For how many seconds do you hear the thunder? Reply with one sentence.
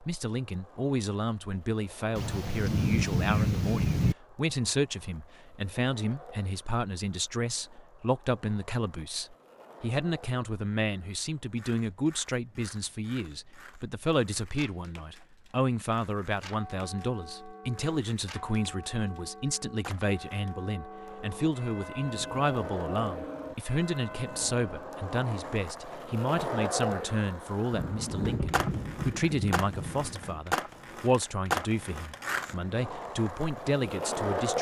You can hear the thunder for 5 seconds altogether.